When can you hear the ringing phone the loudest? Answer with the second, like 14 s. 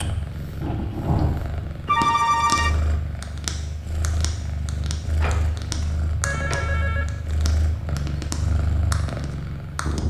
2 s.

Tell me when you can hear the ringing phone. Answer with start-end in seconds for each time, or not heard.
1.9-2.8, 5.7-7.0.